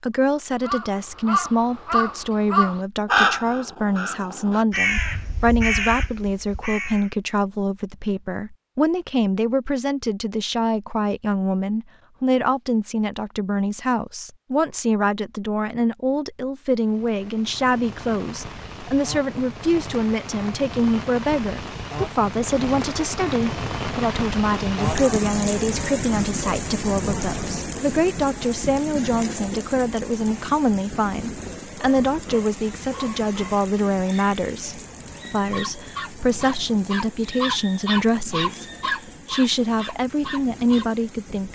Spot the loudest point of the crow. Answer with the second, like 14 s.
3 s.